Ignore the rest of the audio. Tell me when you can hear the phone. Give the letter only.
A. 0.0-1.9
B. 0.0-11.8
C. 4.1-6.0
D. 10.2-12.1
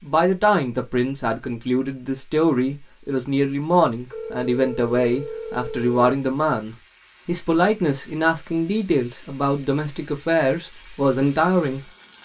C.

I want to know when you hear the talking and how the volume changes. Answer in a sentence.
The talking can be heard from 0.0 to 11.8 s, at a steady volume.